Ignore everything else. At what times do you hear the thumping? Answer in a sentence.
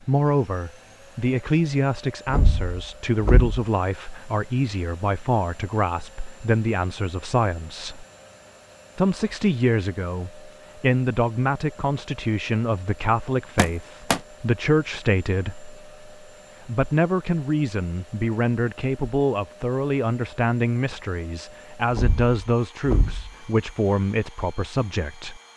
You can hear the thumping from 2.2 to 3.6 s, from 13.6 to 14.2 s and from 21.9 to 23.3 s.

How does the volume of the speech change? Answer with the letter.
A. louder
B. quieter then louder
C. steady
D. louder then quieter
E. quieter
C.